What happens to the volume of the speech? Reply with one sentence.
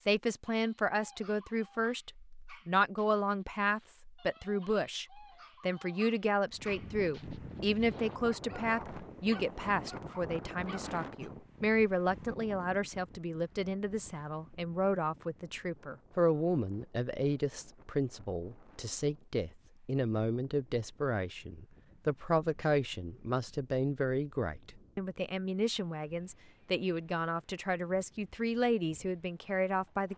The loudness of the speech stays about the same.